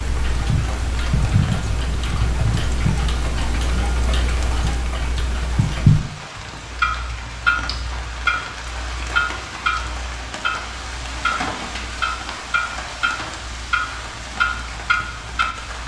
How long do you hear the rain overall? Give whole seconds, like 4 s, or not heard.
16 s.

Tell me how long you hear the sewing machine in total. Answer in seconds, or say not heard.
not heard.